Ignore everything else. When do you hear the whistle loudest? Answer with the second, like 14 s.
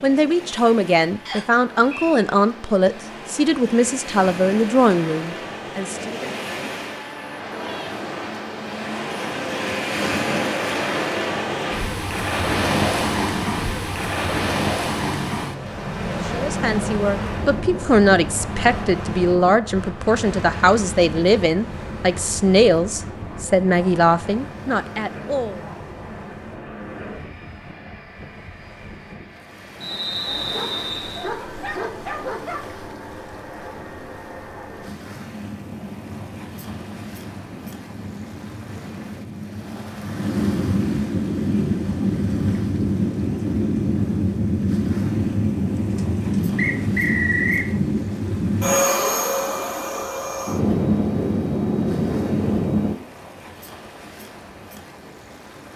47 s.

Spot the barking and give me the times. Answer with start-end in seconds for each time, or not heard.
30.2-32.8.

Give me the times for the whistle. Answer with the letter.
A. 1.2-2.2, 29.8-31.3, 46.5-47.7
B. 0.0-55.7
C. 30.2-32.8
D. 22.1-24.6
A.